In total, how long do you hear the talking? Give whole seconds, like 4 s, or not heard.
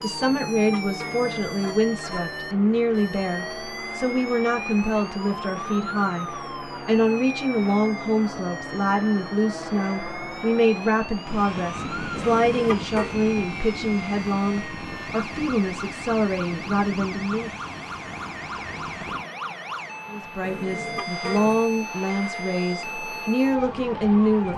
22 s.